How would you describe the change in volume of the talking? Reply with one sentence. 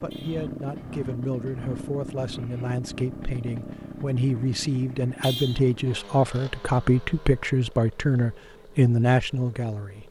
The volume of the talking goes up.